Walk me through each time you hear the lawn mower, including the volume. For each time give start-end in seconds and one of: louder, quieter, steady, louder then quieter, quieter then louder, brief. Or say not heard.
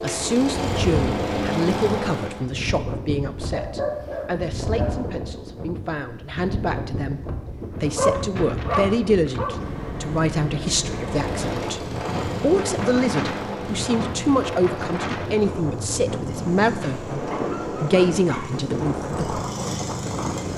0.0-2.5 brief
10.8-20.5 quieter then louder.